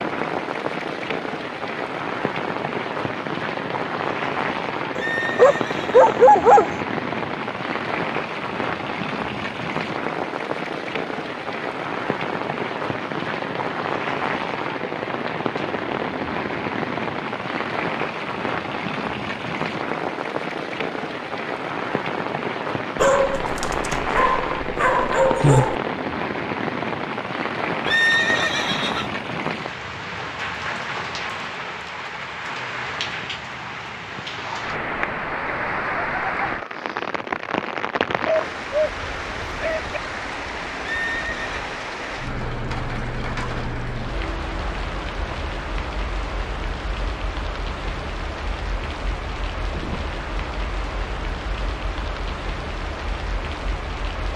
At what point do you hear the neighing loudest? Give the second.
28 s.